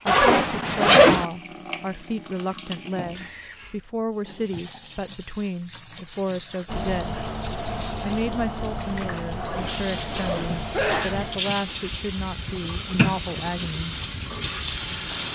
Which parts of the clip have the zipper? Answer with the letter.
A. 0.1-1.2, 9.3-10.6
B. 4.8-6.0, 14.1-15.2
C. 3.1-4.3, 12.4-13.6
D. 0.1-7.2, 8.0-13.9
A.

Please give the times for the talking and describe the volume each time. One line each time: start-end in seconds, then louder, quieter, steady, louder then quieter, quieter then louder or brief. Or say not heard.
0.1-7.2 steady
8.0-13.9 steady.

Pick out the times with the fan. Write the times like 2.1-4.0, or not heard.
6.7-15.2.